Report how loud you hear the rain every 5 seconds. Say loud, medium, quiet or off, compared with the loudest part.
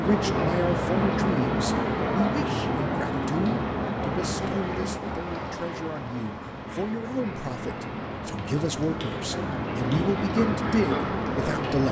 loud, medium, loud.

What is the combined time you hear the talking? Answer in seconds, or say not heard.
12 s.